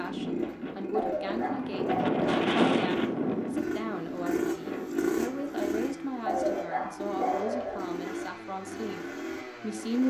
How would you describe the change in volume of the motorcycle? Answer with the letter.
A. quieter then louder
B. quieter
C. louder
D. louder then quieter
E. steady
D.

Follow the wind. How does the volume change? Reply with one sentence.
The loudness of the wind goes up, then down.